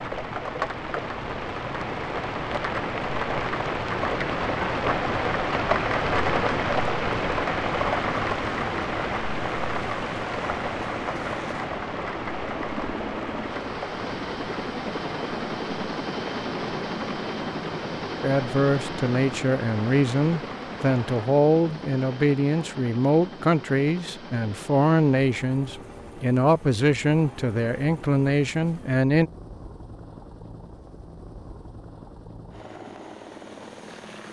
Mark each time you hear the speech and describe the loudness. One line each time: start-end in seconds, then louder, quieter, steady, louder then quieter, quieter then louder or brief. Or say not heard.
18.2-29.3 steady.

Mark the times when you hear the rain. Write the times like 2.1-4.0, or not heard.
0.0-21.3.